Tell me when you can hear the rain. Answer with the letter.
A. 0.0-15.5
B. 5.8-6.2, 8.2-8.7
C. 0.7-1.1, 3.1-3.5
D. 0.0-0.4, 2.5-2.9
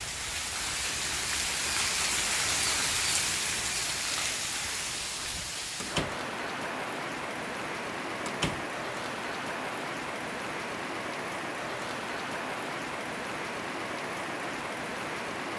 A.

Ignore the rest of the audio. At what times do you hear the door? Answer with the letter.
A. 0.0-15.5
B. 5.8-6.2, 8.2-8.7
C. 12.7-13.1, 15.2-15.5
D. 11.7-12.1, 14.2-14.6
B.